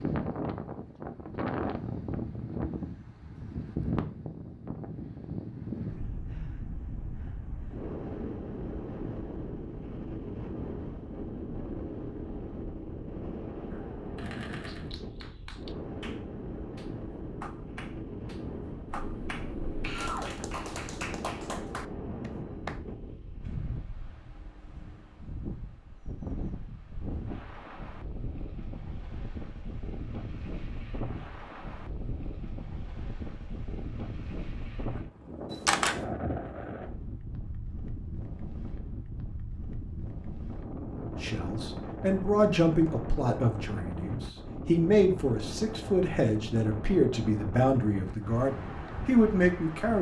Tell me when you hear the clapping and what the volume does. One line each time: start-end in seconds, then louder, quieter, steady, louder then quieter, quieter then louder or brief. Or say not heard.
14.7-22.8 louder.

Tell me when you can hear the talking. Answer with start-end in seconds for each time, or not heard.
41.2-49.9.